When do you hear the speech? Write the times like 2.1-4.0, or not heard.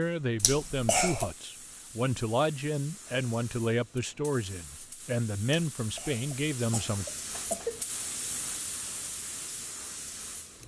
0.0-7.0.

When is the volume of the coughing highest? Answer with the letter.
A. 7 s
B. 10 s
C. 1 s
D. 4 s
C.